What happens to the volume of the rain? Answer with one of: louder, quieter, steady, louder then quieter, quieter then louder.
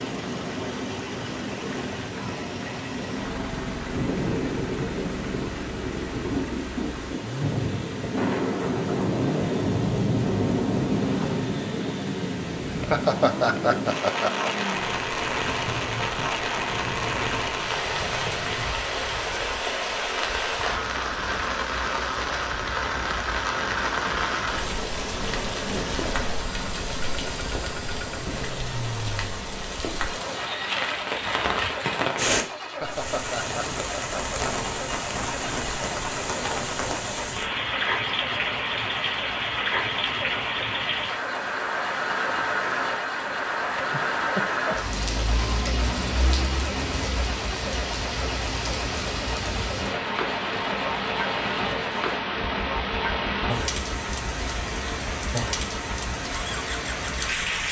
steady.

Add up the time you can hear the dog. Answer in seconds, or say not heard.
not heard.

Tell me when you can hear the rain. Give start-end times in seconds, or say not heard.
0.0-57.6.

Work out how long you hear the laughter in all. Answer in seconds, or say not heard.
5 s.